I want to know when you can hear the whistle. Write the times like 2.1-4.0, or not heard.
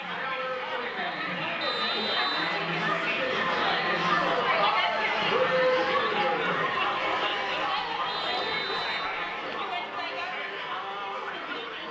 1.6-2.6, 8.1-9.1.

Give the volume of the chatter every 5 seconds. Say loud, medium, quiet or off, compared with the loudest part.
loud, loud, medium.